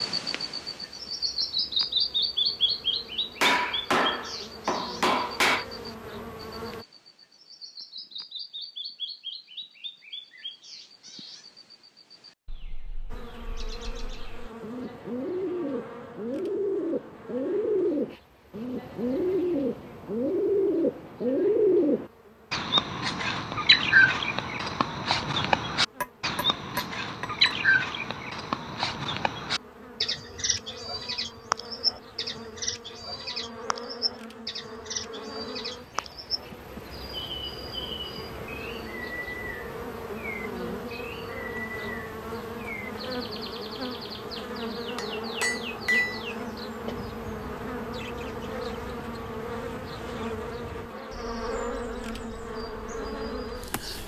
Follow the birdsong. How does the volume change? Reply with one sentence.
The volume of the birdsong goes up, then down.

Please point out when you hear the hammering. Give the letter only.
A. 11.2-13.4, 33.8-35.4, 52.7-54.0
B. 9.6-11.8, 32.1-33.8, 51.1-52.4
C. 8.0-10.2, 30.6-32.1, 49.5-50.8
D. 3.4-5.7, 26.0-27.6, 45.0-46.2
D.